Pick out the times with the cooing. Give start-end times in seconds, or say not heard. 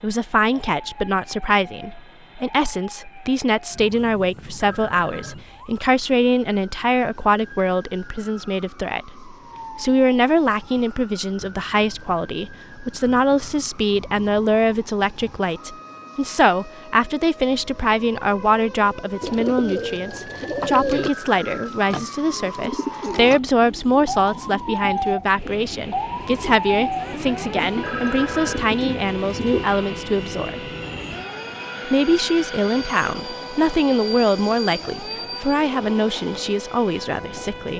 19.2-29.6.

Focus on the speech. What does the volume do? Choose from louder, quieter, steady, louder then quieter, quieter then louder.
steady.